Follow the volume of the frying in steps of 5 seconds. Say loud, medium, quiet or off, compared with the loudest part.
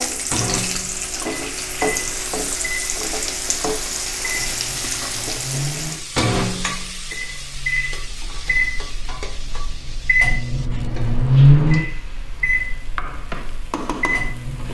loud, medium, medium.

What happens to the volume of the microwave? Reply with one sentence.
The loudness of the microwave goes up.